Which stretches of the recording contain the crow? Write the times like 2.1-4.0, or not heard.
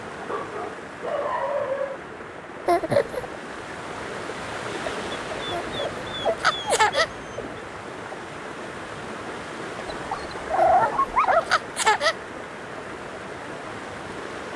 not heard.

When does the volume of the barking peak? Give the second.
11 s.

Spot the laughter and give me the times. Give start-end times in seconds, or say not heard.
2.6-3.2, 5.5-7.1, 10.6-12.2.